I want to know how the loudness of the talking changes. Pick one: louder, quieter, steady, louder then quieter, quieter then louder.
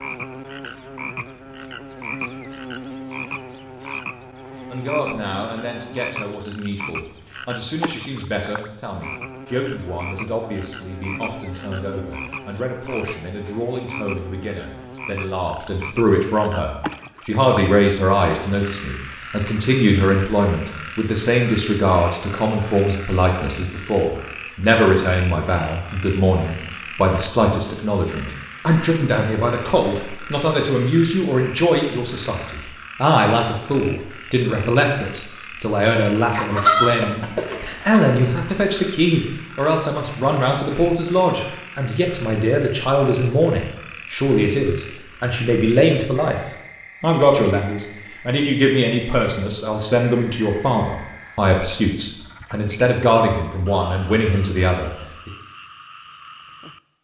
louder.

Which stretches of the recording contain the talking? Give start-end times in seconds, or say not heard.
4.7-55.3.